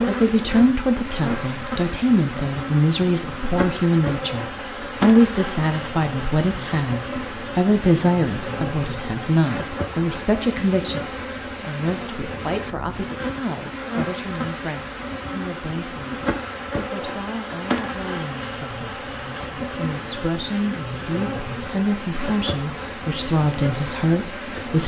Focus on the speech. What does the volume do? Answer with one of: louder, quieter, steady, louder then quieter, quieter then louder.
quieter then louder.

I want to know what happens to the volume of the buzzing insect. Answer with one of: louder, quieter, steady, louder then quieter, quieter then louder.
steady.